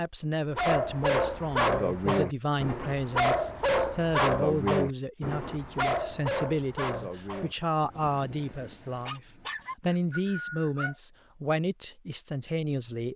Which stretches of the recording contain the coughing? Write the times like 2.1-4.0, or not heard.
not heard.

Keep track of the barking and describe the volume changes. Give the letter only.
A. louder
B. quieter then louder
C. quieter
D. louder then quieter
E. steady
C.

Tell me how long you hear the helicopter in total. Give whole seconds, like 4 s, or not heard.
not heard.